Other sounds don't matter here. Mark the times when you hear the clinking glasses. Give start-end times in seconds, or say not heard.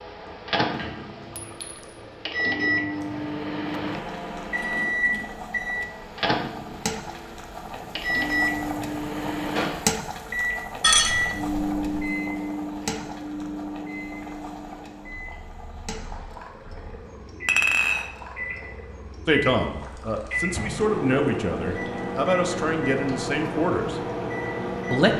1.4-2.0, 10.8-12.1, 17.4-18.1.